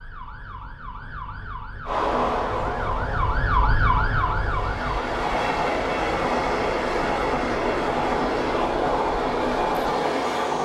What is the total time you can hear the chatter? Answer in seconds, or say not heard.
not heard.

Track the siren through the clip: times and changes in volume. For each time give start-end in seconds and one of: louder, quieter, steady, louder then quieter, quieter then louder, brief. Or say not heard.
0.0-10.6 louder then quieter.